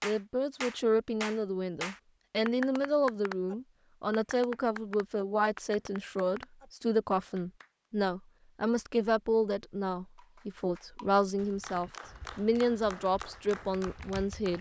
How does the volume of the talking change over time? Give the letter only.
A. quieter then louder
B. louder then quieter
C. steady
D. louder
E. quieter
C.